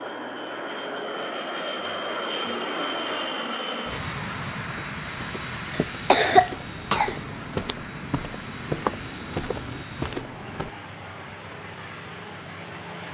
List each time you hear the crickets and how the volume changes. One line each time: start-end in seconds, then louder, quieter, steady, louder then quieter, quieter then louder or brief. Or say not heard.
6.5-13.0 steady.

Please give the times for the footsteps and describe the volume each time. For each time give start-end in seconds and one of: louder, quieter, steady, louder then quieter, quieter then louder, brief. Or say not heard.
4.7-10.7 louder.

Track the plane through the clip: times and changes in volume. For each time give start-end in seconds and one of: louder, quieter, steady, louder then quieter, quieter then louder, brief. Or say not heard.
0.0-13.0 quieter.